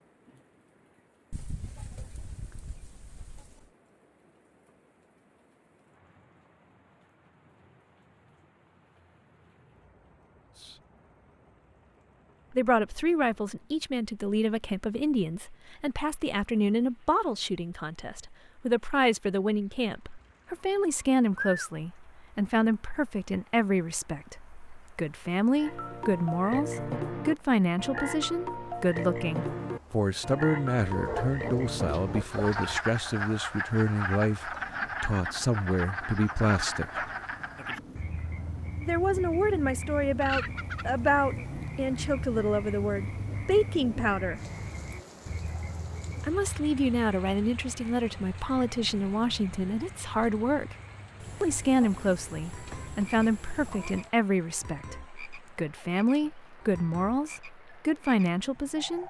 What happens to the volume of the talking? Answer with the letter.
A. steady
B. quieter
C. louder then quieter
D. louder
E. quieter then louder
A.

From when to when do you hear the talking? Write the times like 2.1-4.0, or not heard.
12.5-37.0, 38.8-44.4, 46.2-50.8, 51.4-59.0.